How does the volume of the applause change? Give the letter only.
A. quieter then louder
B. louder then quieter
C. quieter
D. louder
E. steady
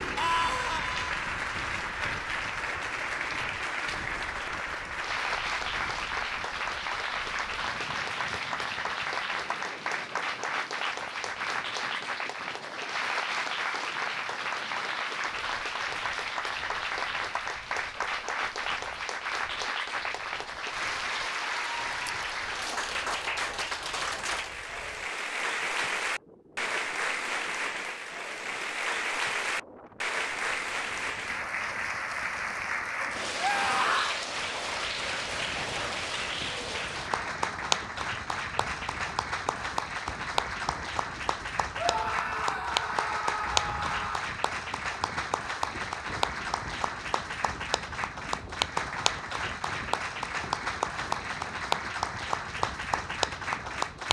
E.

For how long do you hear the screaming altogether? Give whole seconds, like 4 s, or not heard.
4 s.